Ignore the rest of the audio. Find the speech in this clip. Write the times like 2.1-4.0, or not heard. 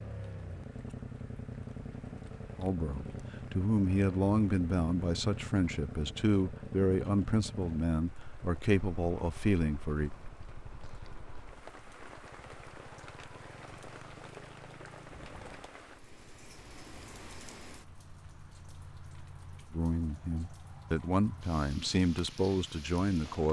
2.6-10.1, 19.7-23.4.